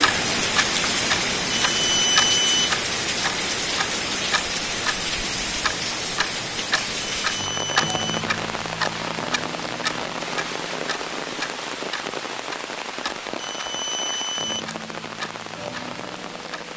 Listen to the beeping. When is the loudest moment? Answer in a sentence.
The loudest moment of the beeping is at 2 seconds.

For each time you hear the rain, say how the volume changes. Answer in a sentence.
The rain can be heard from 0.0 to 16.7 s, getting quieter.